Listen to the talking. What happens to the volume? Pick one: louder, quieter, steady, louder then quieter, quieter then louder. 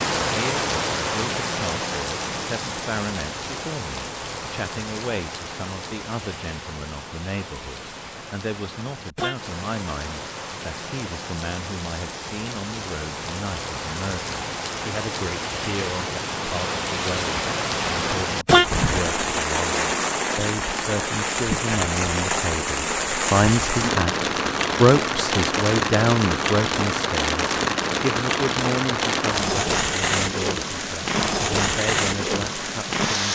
louder then quieter.